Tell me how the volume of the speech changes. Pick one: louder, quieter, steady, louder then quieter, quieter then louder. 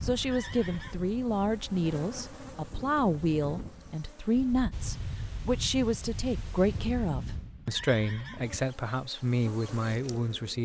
steady.